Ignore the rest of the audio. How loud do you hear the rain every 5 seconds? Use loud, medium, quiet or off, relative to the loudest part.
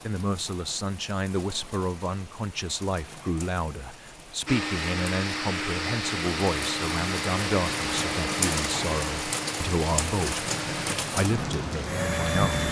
quiet, loud, loud.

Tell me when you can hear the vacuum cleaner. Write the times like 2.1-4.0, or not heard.
4.5-12.6.